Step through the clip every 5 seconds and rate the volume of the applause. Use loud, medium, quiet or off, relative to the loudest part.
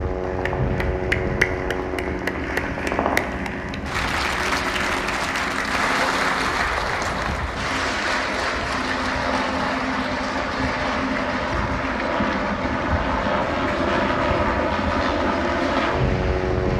loud, loud, medium, medium.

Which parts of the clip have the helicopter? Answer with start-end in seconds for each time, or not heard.
0.0-16.7.